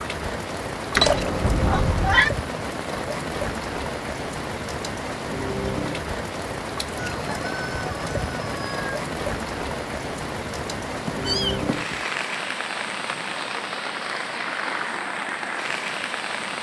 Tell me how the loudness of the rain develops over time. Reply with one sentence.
The loudness of the rain stays about the same.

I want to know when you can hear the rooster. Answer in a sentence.
You can hear the rooster from 7.0 to 9.0 s.